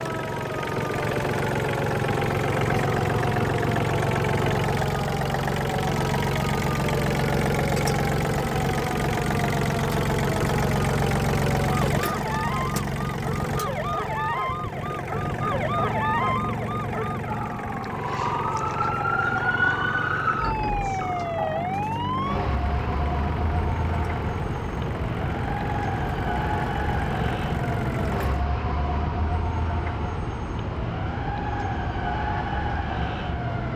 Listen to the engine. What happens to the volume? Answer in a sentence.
The loudness of the engine goes down.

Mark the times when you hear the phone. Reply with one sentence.
You can't hear the phone here.